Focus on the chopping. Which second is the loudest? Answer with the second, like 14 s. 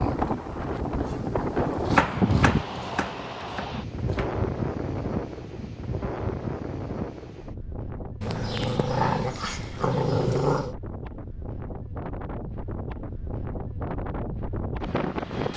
2 s.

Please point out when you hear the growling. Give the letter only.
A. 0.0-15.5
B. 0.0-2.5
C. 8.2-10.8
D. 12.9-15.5
C.